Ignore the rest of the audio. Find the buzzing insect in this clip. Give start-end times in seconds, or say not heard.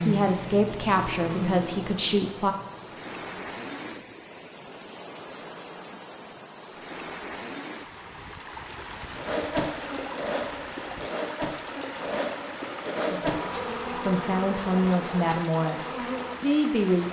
0.0-4.2, 9.2-17.0.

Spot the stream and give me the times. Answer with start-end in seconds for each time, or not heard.
0.0-17.0.